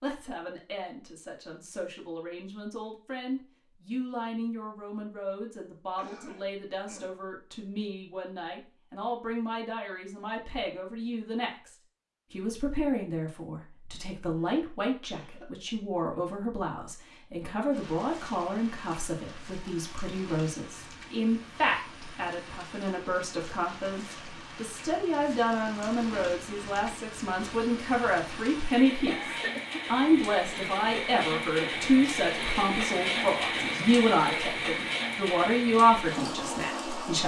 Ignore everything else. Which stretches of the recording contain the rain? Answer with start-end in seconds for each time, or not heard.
17.7-37.2.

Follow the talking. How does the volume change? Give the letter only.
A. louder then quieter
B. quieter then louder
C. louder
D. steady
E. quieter
C.